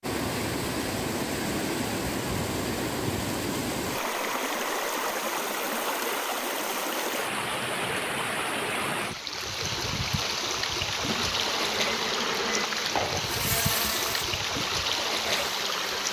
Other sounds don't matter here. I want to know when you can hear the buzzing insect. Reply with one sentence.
You can hear the buzzing insect from 11.1 to 16.0 s.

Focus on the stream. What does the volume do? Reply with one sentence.
The volume of the stream stays about the same.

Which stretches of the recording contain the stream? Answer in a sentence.
You can hear the stream from 0.0 to 16.0 s.